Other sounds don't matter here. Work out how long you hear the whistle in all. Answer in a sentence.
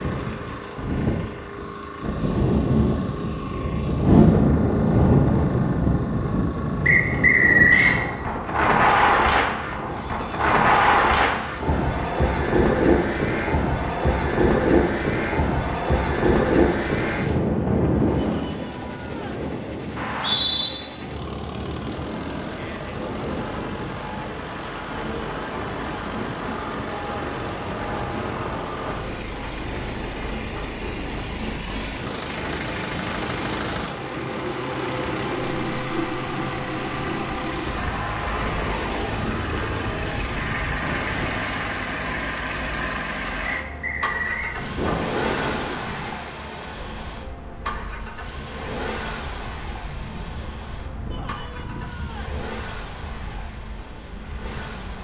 You can hear the whistle for 3 seconds altogether.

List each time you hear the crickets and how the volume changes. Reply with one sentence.
You can't hear the crickets here.